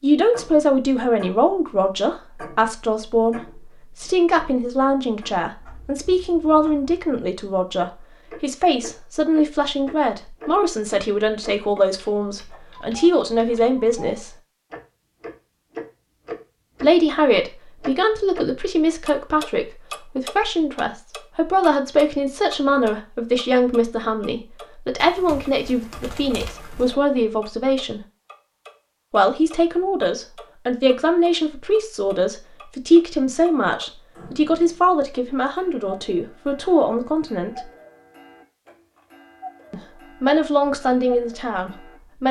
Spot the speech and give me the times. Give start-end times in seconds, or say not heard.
0.0-14.3, 16.8-28.0, 29.1-37.6, 39.7-42.2.